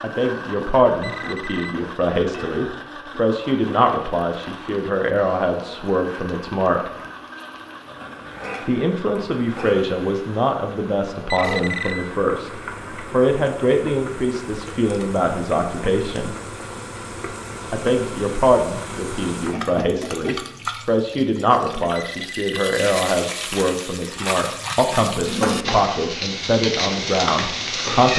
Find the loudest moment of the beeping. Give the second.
12 s.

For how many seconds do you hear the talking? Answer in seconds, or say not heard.
25 s.